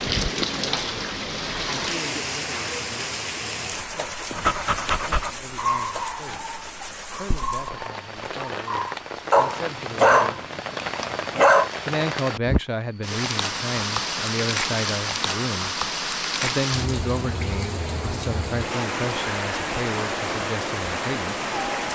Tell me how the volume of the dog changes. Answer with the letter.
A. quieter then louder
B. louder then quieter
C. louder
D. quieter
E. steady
A.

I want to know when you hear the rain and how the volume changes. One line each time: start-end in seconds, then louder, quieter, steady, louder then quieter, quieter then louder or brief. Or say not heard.
0.0-21.9 quieter then louder.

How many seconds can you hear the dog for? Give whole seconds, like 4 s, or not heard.
7 s.